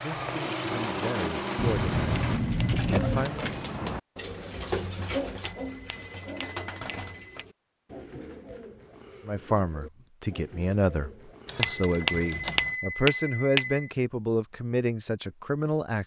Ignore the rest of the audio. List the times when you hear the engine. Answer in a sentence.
You can hear the engine from 0.0 to 2.4 s.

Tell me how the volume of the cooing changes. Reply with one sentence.
The volume of the cooing goes down.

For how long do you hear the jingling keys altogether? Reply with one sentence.
You can hear the jingling keys for 3 seconds altogether.